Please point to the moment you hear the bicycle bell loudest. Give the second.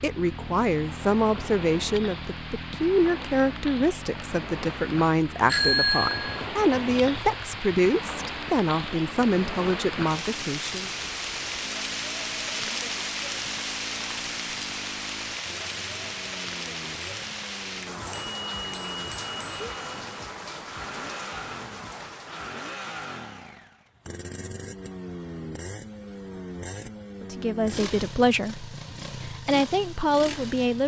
6 s.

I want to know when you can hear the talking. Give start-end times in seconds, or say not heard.
0.0-10.9, 27.2-30.8.